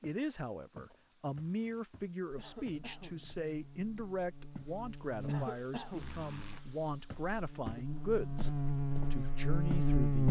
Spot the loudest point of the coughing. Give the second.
6 s.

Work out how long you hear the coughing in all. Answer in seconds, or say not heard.
2 s.